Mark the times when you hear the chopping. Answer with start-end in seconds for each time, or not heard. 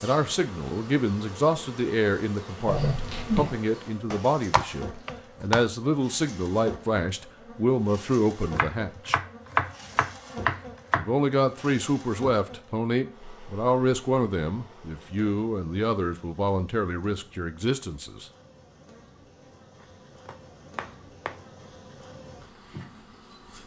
4.1-5.7, 8.6-11.1, 19.8-21.4.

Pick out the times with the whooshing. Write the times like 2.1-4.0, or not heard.
2.6-3.6.